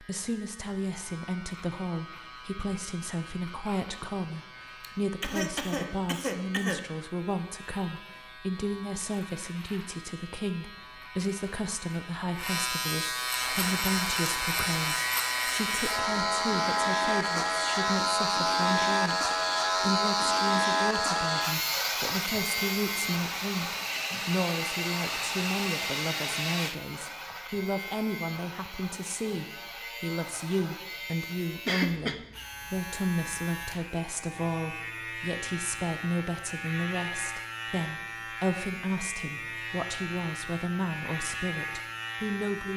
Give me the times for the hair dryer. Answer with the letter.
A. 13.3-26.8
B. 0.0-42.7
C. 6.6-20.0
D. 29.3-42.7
A.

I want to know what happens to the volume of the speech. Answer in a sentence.
The loudness of the speech stays about the same.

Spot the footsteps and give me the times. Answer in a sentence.
You can't hear the footsteps here.